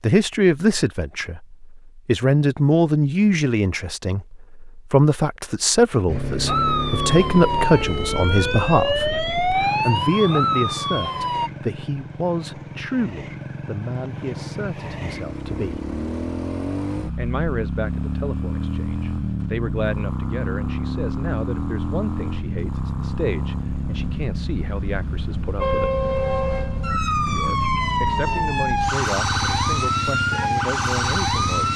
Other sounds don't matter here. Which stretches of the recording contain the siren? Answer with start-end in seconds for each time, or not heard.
6.5-11.5, 25.6-31.7.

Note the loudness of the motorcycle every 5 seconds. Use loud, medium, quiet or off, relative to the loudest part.
off, loud, medium, loud, loud, loud, loud.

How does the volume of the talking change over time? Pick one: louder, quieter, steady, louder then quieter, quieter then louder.
quieter.